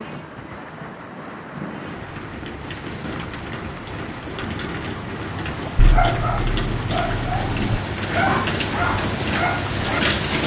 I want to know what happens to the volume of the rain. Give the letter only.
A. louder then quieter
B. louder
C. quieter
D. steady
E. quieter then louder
B.